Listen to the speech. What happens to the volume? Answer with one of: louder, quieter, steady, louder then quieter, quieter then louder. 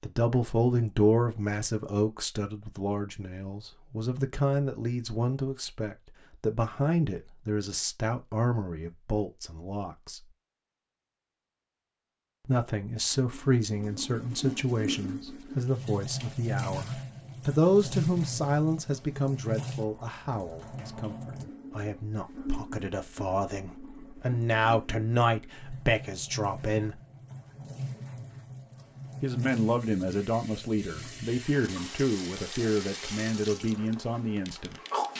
steady.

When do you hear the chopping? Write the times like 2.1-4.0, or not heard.
not heard.